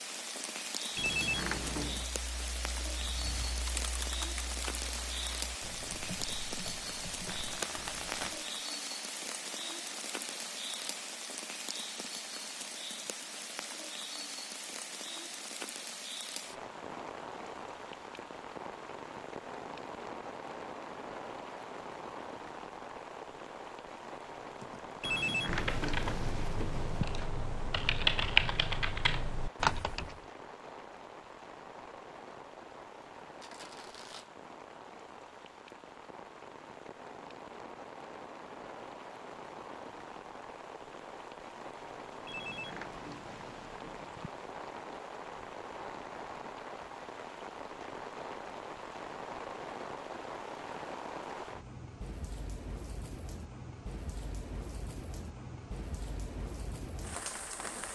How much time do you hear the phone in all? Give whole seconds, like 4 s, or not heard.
5 s.